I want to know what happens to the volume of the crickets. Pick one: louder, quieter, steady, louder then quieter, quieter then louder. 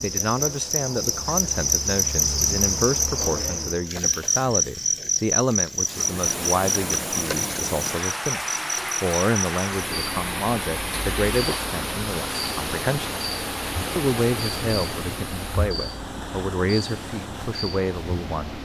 quieter.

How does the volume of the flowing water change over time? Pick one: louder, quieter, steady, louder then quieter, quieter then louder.
quieter.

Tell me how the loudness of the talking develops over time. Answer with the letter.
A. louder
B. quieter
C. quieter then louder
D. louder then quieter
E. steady
E.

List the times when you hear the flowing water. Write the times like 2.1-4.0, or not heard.
5.8-18.6.